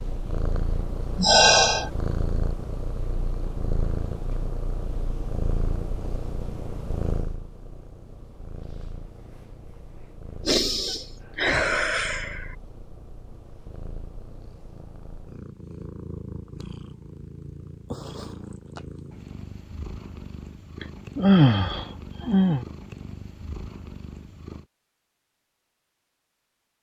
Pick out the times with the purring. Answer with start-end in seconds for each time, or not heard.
0.0-24.6.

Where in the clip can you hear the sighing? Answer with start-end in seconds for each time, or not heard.
1.1-1.9, 10.4-12.4, 20.8-22.6.